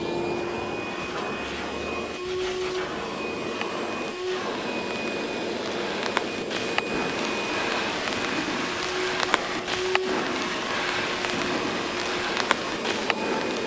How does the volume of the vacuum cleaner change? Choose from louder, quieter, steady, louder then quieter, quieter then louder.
steady.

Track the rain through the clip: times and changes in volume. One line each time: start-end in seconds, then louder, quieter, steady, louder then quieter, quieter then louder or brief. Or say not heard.
0.0-13.6 louder.